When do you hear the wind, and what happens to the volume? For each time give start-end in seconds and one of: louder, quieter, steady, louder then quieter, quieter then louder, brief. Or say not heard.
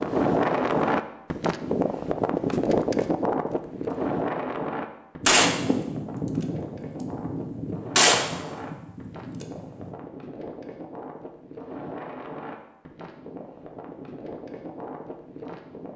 0.0-15.9 quieter.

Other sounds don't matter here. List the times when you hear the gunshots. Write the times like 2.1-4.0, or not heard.
5.2-9.9.